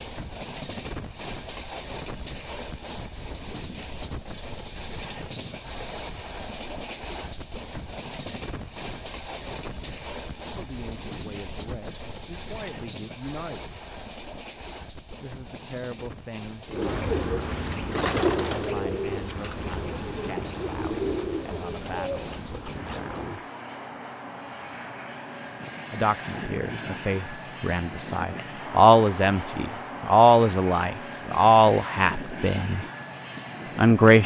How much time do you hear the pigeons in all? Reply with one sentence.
You can hear the pigeons for 7 seconds altogether.